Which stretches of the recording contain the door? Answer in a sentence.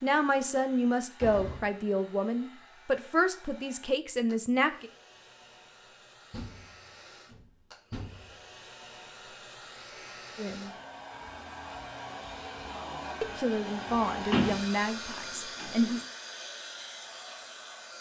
The door can be heard from 0.5 to 1.7 s, from 6.3 to 8.4 s and from 14.3 to 16.0 s.